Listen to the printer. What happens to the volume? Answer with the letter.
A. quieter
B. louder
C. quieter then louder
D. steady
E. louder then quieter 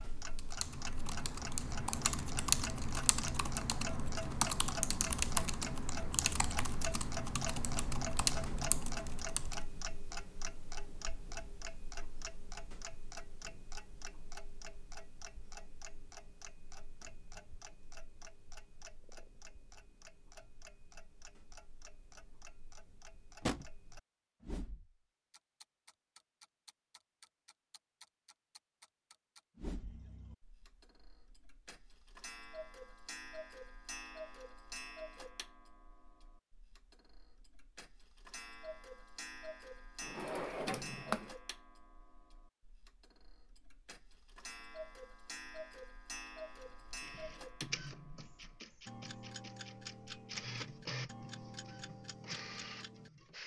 C.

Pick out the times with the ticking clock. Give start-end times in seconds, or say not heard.
0.0-53.4.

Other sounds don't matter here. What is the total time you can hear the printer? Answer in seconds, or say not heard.
7 s.